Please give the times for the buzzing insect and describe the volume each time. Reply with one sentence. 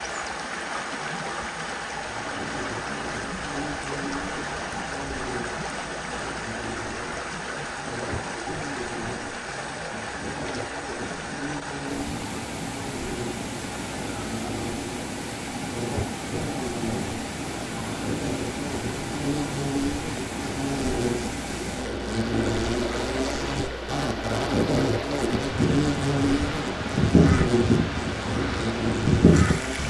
You can hear the buzzing insect from 2.0 to 29.8 s, getting louder.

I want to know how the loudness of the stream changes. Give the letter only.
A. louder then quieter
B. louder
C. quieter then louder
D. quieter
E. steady
E.